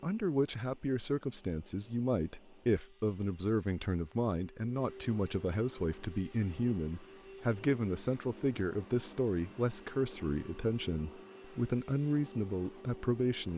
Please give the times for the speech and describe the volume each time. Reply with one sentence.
You can hear the speech from 0.0 to 13.5 s, at a steady volume.